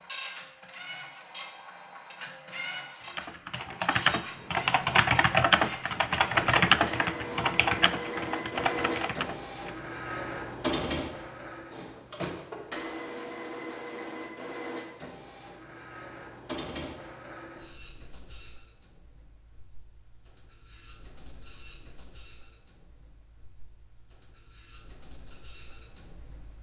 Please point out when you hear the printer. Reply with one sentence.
You can hear the printer from 0.0 to 26.5 s.